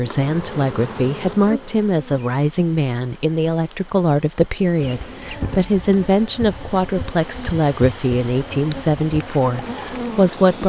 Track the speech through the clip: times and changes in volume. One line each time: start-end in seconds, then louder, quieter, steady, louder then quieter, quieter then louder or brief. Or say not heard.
0.0-10.6 steady.